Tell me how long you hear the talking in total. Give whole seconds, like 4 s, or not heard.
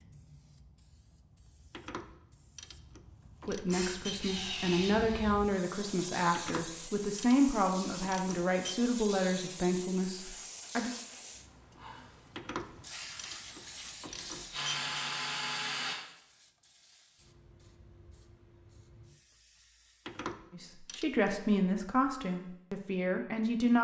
11 s.